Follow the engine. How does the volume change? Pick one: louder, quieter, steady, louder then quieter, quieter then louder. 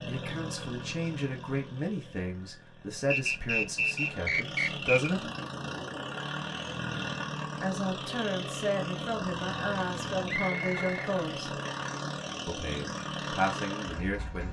louder.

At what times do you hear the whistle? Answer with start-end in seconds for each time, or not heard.
3.1-5.1, 10.2-11.1.